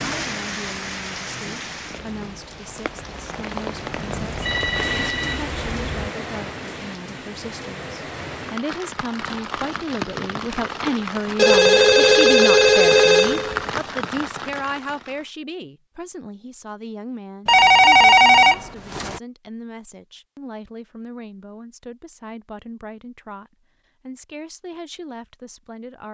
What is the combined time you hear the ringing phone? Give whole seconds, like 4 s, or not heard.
6 s.